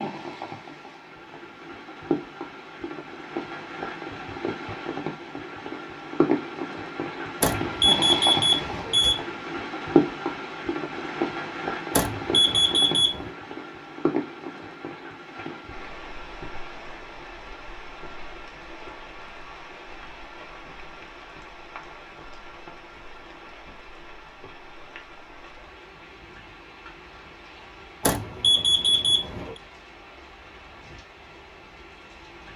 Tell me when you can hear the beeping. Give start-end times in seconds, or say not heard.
7.4-9.2, 11.9-13.3, 28.0-29.6.